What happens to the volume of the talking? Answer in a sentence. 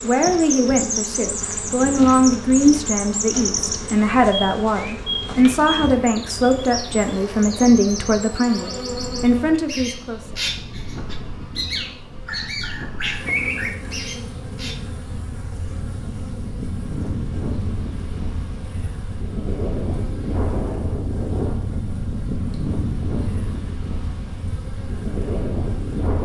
The loudness of the talking stays about the same.